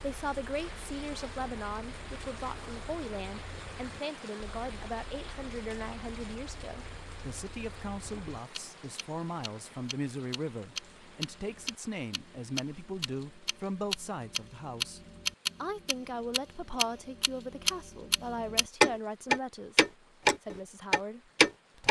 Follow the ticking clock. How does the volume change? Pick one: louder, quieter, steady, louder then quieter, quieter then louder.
louder.